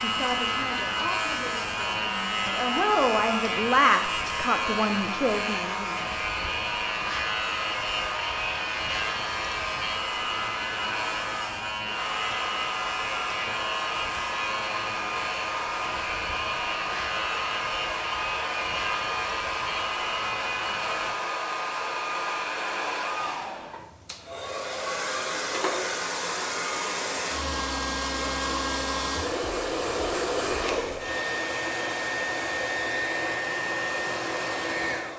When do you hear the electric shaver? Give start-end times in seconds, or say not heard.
0.0-21.1.